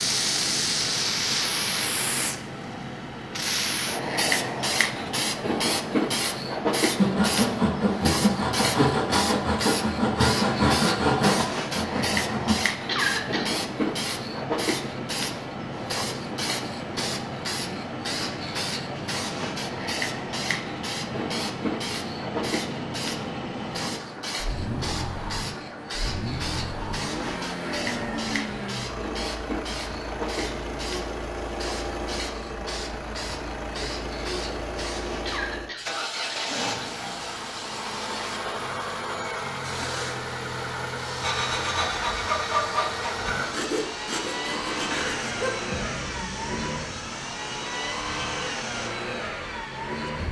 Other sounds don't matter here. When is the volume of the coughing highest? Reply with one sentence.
The loudest moment of the coughing is at 13 seconds.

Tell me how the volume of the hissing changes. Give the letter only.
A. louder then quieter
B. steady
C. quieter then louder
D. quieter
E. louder
D.